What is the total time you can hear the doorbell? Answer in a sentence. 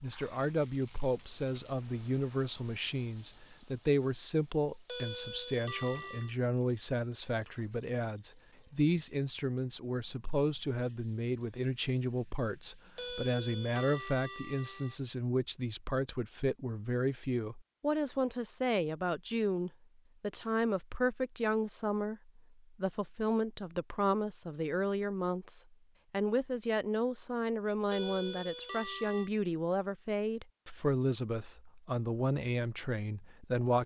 The doorbell can be heard for 5 seconds in total.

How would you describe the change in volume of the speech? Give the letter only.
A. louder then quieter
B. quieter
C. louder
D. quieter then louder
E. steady
E.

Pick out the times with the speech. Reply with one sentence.
You can hear the speech from 0.0 to 33.8 s.